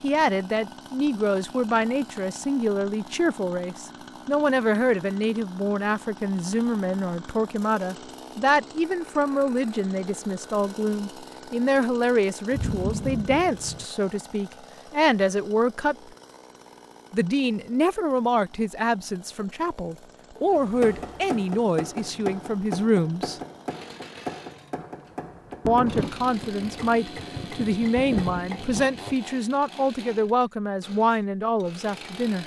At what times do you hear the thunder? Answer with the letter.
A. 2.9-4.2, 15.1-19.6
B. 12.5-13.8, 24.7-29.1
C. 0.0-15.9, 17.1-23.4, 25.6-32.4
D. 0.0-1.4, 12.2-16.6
B.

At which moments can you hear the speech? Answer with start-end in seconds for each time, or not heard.
0.0-15.9, 17.1-23.4, 25.6-32.4.